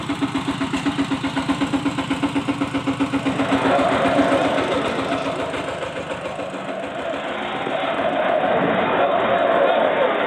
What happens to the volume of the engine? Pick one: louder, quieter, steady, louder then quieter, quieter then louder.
quieter.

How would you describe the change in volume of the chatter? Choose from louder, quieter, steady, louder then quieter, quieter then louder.
quieter then louder.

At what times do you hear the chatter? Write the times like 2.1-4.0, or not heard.
3.2-10.2.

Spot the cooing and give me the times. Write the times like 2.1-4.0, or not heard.
4.2-5.3.